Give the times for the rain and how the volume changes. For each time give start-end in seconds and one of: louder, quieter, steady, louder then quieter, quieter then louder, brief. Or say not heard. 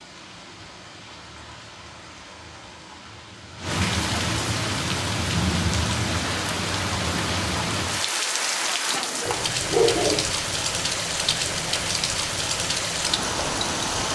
0.0-14.1 louder.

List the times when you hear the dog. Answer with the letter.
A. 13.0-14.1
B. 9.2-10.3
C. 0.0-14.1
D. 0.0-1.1
B.